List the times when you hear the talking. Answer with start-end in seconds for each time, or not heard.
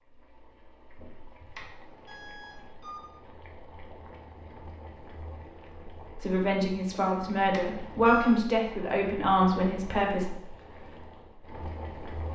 6.2-10.2.